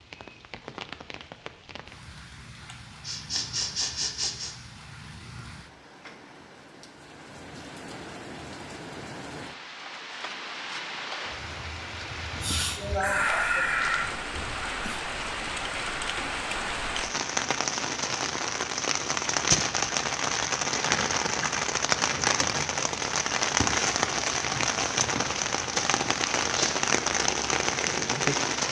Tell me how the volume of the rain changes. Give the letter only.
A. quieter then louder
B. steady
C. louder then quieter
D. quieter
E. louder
E.